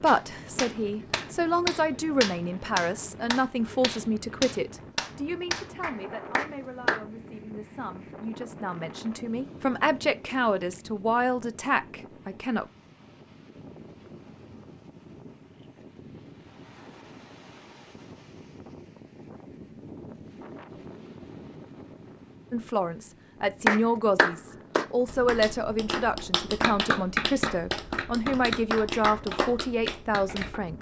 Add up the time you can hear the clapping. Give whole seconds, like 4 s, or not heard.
14 s.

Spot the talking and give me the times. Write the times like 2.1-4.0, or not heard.
0.0-12.7, 22.5-30.7.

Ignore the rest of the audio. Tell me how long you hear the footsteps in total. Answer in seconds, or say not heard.
not heard.